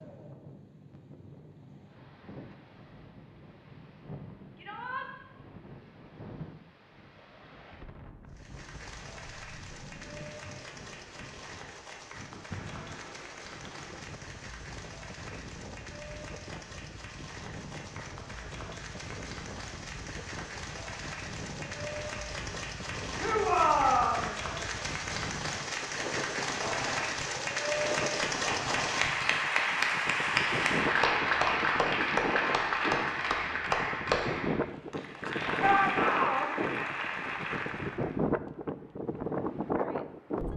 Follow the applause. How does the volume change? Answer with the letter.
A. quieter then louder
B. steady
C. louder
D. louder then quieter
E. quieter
C.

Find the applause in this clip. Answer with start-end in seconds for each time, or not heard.
8.3-38.2.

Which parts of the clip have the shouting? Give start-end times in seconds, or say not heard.
4.5-5.1, 23.1-24.2, 35.6-36.5.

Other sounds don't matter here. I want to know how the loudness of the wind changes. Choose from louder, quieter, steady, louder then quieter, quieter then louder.
louder.